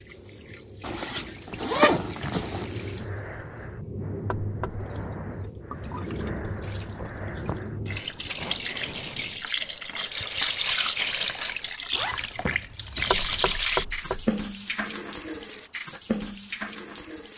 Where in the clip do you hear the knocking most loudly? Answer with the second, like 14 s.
14 s.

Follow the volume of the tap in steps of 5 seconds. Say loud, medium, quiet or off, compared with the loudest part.
medium, medium, loud, medium.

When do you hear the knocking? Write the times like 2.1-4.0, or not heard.
4.3-4.8, 13.1-14.3.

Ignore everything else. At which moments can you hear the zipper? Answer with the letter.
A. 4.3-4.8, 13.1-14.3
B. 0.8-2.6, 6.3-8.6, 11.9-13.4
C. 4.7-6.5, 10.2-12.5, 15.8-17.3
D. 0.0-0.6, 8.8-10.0
B.